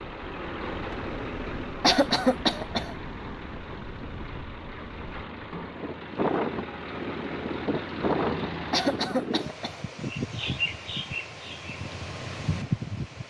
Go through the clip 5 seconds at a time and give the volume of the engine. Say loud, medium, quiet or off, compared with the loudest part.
loud, loud, off.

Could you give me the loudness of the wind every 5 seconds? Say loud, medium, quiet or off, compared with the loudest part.
quiet, loud, loud.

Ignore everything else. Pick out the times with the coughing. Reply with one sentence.
The coughing can be heard from 1.8 to 3.0 s and from 8.7 to 9.8 s.